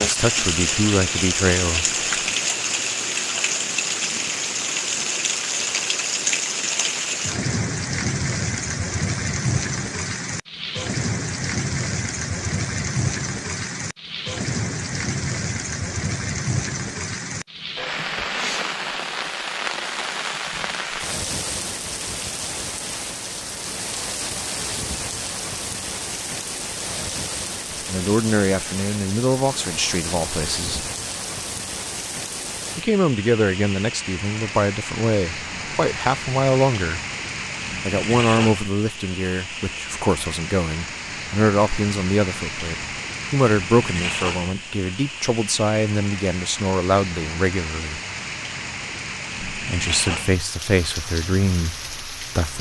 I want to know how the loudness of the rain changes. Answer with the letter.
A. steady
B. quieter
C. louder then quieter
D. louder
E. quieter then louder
B.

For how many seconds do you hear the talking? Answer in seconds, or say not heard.
22 s.